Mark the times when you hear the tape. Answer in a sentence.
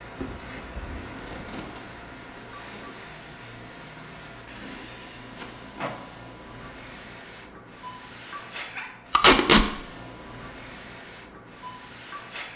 The tape can be heard from 1.1 to 1.8 s, from 5.3 to 5.9 s and from 9.1 to 9.7 s.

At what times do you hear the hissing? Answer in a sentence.
The hissing can be heard from 0.0 to 12.5 s.